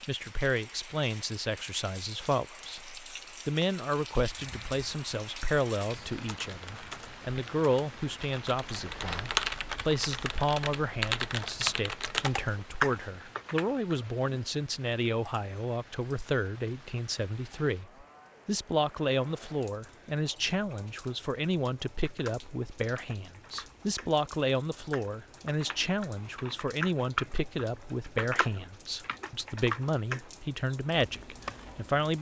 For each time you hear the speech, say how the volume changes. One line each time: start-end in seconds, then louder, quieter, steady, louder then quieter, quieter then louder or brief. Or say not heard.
0.1-32.1 steady.